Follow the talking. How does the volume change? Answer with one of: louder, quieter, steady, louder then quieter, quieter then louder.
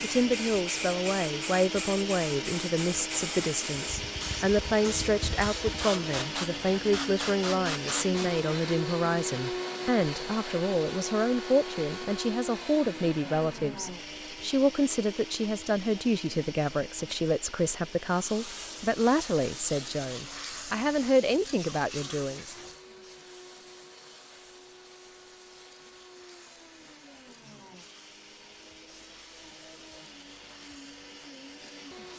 steady.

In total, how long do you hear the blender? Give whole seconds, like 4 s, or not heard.
32 s.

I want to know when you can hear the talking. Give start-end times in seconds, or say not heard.
0.0-22.6.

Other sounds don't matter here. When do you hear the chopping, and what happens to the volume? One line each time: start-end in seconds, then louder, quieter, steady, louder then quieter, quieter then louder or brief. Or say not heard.
not heard.